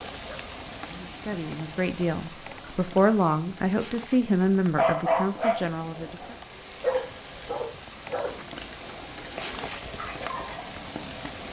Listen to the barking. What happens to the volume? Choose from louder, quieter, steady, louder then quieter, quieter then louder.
quieter.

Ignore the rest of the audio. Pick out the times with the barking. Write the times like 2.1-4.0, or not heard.
4.8-10.7.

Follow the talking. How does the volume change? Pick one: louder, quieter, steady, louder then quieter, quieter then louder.
louder then quieter.